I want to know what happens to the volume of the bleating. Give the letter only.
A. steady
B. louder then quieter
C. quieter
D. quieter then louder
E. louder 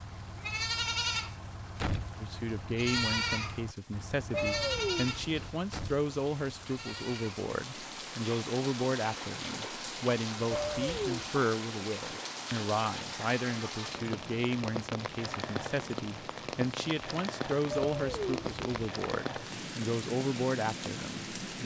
C.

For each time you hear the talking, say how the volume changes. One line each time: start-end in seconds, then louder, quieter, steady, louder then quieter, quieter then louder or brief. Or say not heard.
2.2-21.6 steady.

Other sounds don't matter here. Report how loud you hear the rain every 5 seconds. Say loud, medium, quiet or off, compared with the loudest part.
quiet, loud, loud, loud, loud.